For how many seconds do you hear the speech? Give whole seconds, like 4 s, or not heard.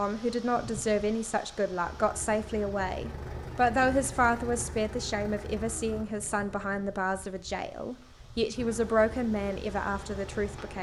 11 s.